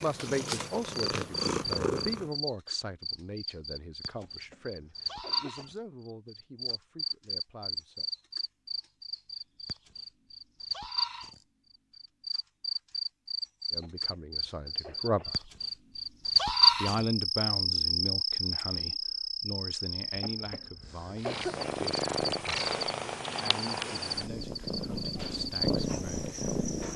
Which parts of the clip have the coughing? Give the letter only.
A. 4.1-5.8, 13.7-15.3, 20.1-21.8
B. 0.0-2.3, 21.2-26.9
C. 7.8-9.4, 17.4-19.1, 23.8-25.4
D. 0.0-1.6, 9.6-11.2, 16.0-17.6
A.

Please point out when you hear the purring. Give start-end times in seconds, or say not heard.
0.0-2.3, 21.2-26.9.